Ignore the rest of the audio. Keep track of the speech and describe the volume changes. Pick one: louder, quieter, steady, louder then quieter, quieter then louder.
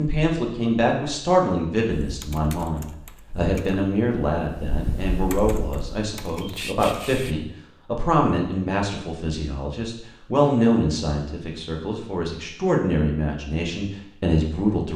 steady.